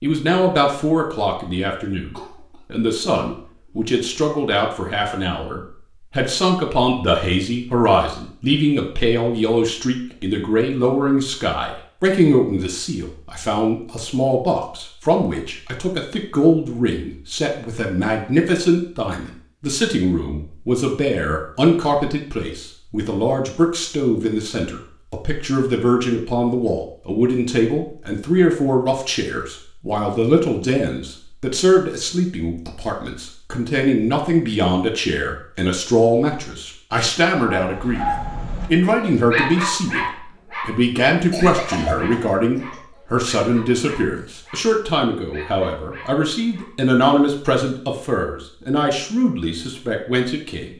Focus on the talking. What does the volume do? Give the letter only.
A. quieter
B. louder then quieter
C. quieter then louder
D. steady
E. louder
D.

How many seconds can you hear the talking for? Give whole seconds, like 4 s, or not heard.
51 s.